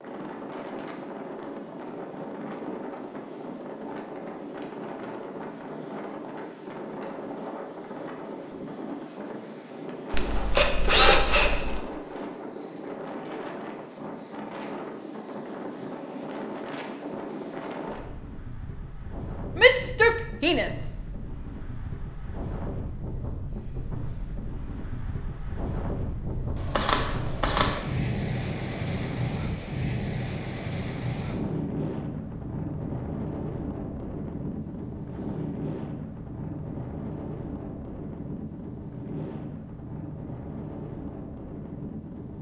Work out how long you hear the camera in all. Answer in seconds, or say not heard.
3 s.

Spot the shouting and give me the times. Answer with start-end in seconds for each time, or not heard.
19.6-20.9.